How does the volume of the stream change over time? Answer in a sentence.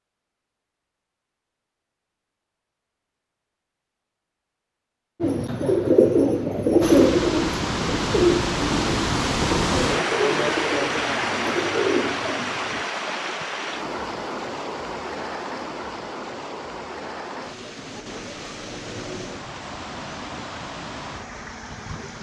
The volume of the stream goes down.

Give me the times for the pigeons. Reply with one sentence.
The pigeons can be heard from 5.2 to 12.8 s.